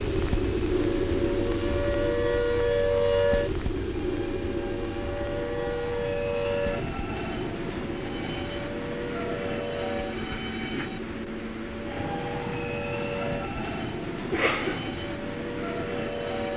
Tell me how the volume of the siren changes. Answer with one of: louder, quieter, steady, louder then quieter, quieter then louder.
quieter.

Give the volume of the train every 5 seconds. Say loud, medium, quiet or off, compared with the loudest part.
medium, loud, loud, loud.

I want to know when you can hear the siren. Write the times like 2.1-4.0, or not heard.
0.0-16.5.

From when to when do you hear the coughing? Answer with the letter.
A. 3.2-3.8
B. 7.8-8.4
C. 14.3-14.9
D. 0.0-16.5
C.